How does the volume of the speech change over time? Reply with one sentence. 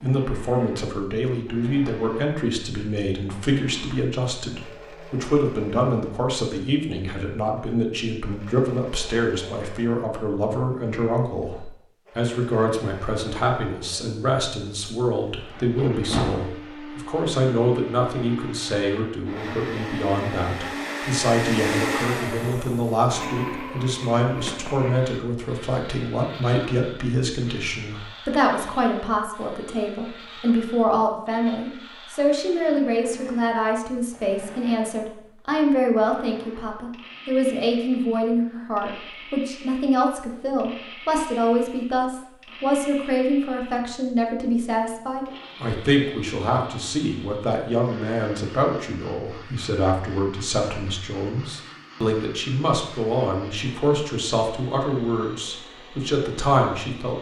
The volume of the speech stays about the same.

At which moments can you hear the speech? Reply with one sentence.
You can hear the speech from 0.0 to 57.1 s.